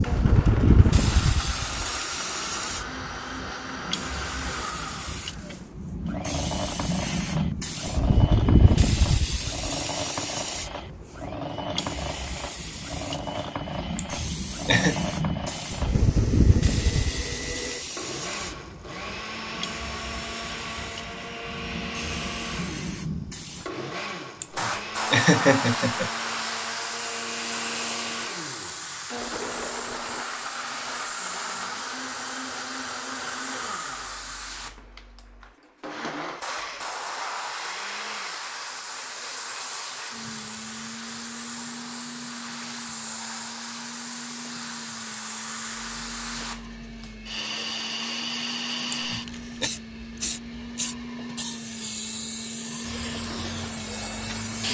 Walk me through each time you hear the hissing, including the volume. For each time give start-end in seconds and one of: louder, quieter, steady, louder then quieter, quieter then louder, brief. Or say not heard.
0.0-54.6 quieter.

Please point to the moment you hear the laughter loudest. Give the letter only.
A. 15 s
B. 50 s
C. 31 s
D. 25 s
D.